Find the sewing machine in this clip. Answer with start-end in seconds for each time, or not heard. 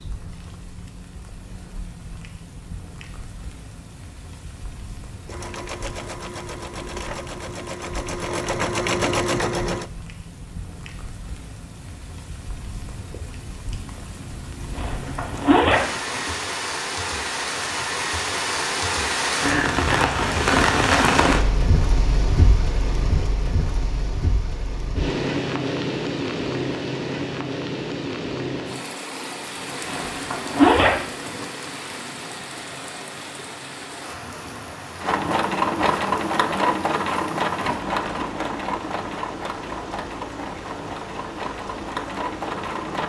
5.2-9.9, 35.0-43.0.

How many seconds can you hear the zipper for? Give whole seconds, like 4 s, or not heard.
3 s.